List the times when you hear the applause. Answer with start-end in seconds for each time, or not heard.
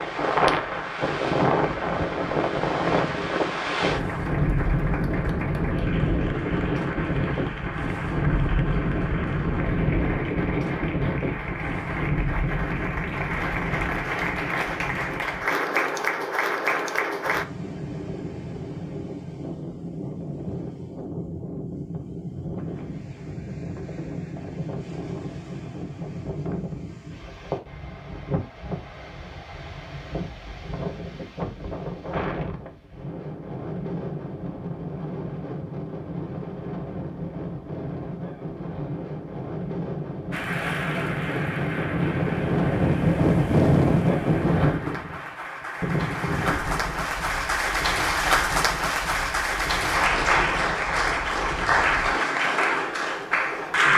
0.0-17.4, 40.3-53.9.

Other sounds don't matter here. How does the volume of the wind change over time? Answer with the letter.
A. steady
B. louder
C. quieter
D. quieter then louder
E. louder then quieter
D.